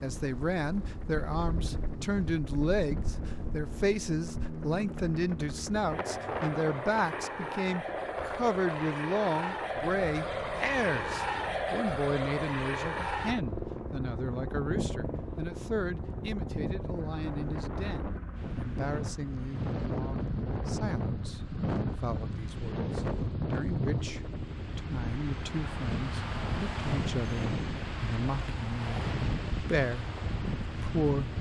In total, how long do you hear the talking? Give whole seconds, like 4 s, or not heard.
31 s.